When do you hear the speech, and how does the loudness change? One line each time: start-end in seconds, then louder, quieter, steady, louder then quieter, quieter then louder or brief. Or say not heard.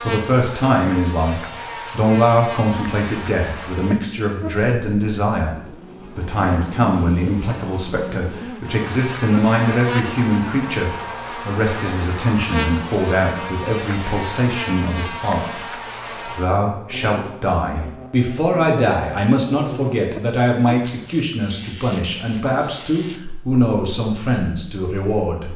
0.0-25.5 steady.